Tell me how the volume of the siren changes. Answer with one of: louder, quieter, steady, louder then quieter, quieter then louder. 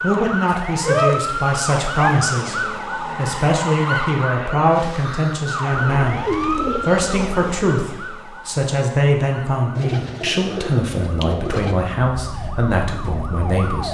quieter then louder.